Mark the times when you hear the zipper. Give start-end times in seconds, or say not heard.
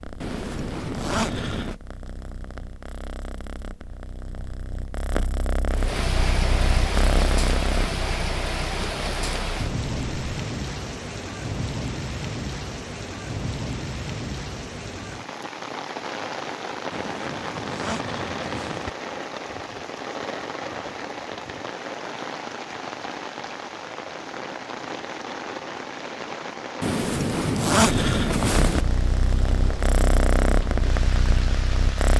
0.2-1.8, 16.9-18.9, 26.8-28.9.